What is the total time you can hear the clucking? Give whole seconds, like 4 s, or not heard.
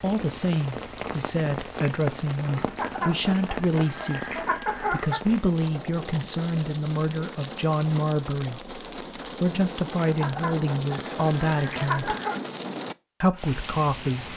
5 s.